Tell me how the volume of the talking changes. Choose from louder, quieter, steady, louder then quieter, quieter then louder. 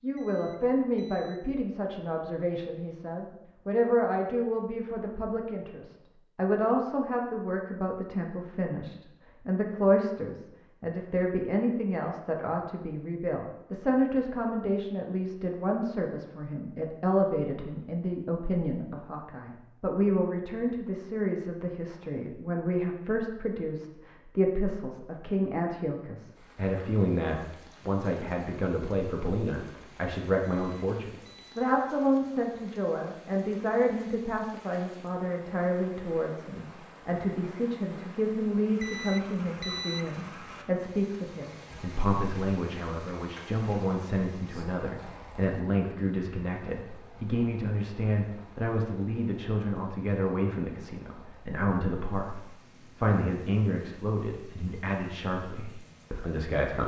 steady.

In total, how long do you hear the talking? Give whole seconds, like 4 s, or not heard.
57 s.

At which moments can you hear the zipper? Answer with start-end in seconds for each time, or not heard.
not heard.